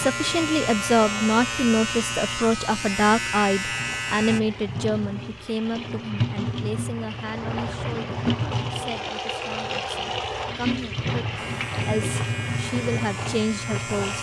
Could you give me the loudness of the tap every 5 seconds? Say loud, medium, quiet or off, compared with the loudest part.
medium, loud, loud.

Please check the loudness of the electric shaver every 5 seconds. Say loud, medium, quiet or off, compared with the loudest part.
loud, off, medium.